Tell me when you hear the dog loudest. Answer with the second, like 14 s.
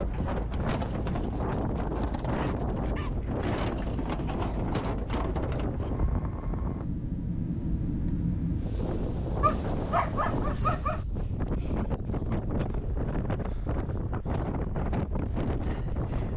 10 s.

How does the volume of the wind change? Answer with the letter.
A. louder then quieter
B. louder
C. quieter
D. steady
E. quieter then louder
D.